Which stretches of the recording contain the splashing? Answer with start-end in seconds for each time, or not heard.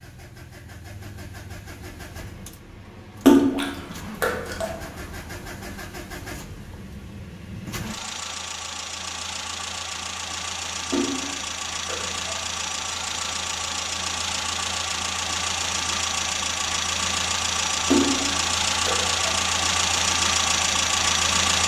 3.2-4.8, 10.9-12.4, 17.9-19.2.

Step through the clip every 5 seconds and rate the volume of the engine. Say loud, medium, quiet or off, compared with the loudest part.
quiet, quiet, medium, loud, loud.